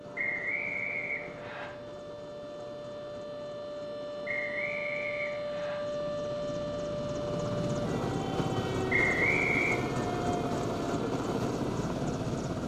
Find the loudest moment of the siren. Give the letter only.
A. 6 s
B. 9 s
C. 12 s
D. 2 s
A.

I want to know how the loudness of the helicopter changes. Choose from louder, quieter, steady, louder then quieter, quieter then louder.
louder.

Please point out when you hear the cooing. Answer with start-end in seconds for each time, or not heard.
not heard.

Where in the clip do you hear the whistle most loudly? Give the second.
9 s.